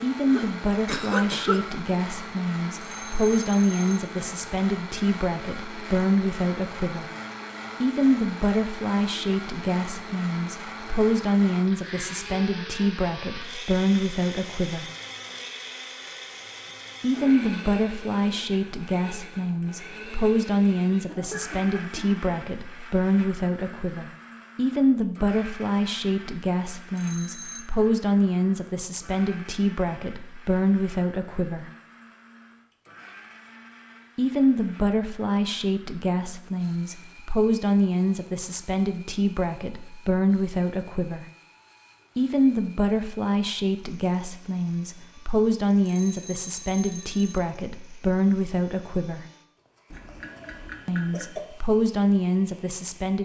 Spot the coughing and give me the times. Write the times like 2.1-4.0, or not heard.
0.2-1.6, 21.1-22.2, 49.9-51.5.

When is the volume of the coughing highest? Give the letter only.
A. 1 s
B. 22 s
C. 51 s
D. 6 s
A.